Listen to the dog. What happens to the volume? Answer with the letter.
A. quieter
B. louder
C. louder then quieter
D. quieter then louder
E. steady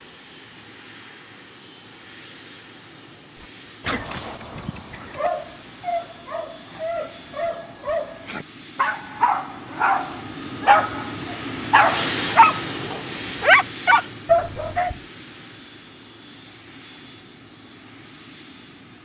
B.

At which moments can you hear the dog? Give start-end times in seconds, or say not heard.
3.9-14.9.